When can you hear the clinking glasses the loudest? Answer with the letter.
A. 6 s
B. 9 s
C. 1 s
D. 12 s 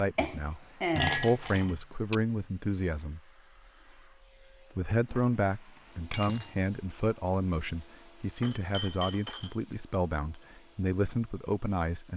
C.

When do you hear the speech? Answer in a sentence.
The speech can be heard from 0.0 to 3.2 s and from 4.8 to 12.1 s.